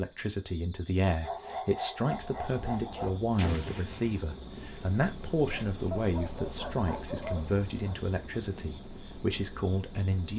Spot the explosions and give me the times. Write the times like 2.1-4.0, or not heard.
3.4-4.2.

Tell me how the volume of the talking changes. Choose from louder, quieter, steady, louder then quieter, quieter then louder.
steady.